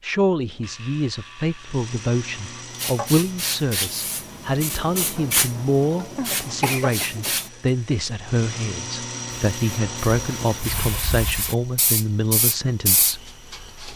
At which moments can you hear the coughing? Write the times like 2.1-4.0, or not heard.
6.2-8.1.